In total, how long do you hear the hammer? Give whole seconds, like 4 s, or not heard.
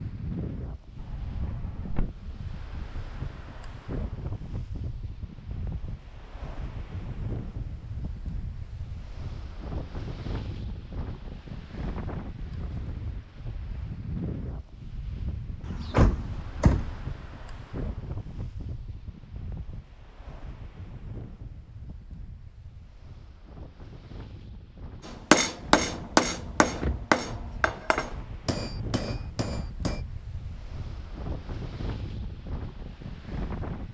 5 s.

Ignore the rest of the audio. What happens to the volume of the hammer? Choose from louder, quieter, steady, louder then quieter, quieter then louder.
quieter.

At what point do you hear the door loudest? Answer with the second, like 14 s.
16 s.